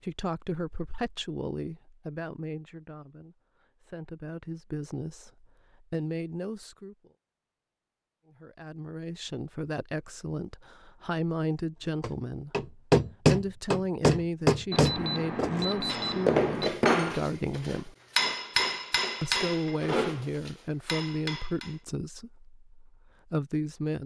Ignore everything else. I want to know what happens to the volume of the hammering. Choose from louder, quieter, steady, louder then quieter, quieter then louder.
quieter.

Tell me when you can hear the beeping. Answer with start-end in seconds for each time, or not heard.
14.7-16.7.